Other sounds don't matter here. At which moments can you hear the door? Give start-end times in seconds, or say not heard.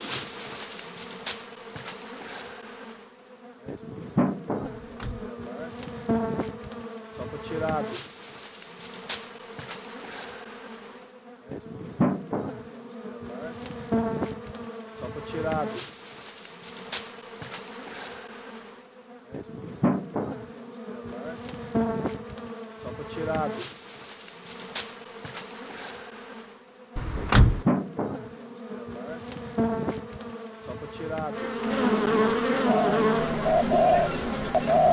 4.8-5.3, 26.9-27.6.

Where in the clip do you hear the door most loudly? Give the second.
27 s.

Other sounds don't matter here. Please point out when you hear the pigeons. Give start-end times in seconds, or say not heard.
32.6-34.8.